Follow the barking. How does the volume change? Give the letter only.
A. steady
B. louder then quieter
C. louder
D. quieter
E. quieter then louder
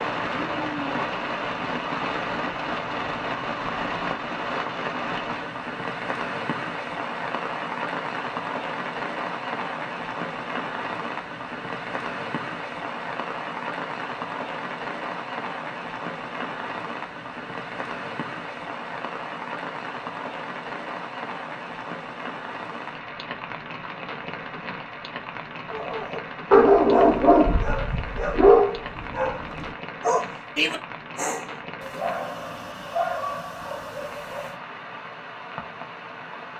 D.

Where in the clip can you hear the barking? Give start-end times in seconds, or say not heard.
25.7-34.5.